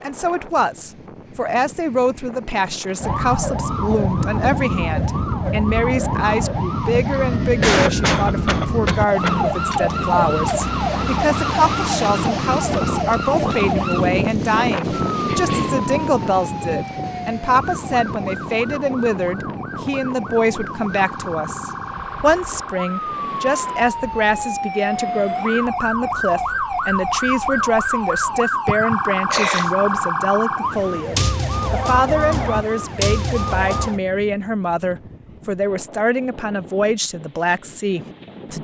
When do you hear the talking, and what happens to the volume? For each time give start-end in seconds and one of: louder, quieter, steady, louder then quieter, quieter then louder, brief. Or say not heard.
0.0-38.5 steady.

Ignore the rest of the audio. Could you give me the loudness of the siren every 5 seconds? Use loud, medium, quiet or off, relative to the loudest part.
loud, loud, loud, medium, medium, loud, loud, off.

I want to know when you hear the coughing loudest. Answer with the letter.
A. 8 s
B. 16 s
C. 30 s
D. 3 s
A.